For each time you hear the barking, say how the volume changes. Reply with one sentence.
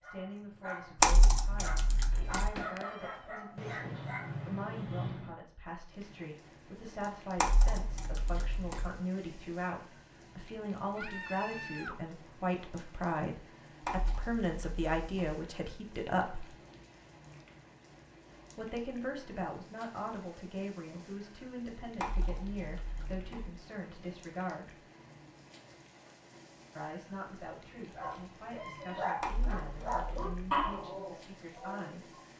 The barking can be heard from 0.0 to 5.3 s, getting louder; and from 27.9 to 32.2 s, getting louder then quieter.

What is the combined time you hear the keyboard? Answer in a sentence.
You can hear the keyboard for 8 seconds altogether.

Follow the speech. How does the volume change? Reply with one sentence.
The loudness of the speech goes up, then down.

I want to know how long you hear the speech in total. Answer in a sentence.
You can hear the speech for 28 seconds altogether.